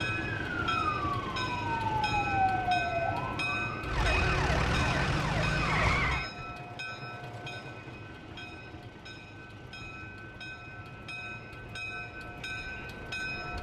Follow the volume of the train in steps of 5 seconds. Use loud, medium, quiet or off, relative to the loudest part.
loud, medium, medium.